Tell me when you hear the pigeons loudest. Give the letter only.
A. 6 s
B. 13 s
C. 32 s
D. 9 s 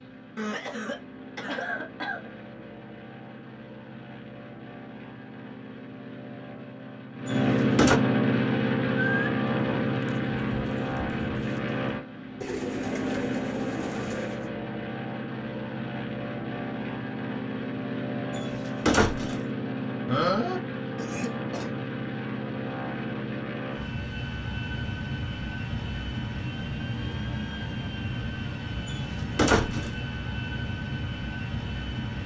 D.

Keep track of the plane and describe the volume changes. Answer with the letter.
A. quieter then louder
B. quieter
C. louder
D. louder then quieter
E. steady
D.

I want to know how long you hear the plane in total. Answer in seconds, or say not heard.
32 s.